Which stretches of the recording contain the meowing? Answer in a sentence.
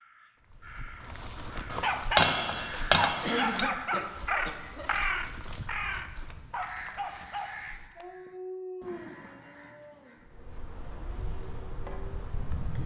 You can't hear the meowing here.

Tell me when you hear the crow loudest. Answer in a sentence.
The loudest moment of the crow is at 5 seconds.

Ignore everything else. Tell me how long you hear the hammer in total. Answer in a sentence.
The hammer can be heard for 2 seconds in total.